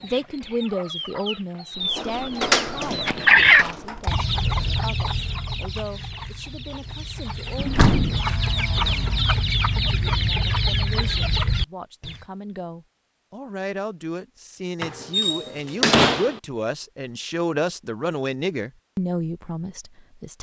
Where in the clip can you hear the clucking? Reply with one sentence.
You can hear the clucking from 0.0 to 12.2 s.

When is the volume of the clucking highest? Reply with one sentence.
The loudest moment of the clucking is at 3 seconds.